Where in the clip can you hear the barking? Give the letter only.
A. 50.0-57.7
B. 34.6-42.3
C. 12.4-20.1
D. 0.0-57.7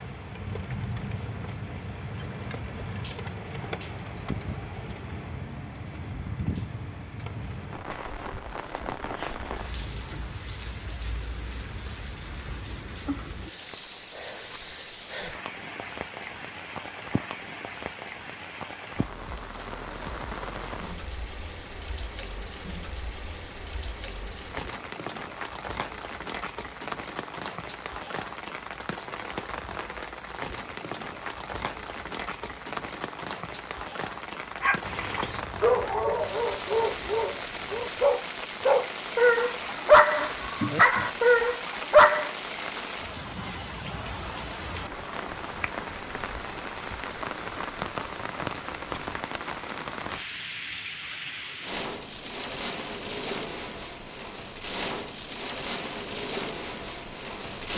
B.